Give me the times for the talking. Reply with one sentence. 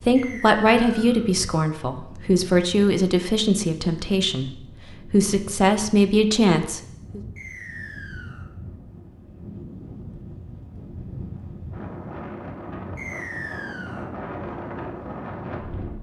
You can hear the talking from 0.1 to 4.5 s and from 5.1 to 7.2 s.